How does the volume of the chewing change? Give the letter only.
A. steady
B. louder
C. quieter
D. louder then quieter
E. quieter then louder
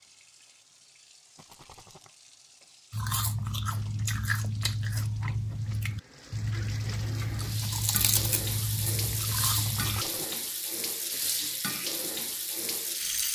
A.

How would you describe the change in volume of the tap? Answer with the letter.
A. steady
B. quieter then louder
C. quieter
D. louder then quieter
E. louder
E.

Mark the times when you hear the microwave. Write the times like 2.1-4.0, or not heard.
not heard.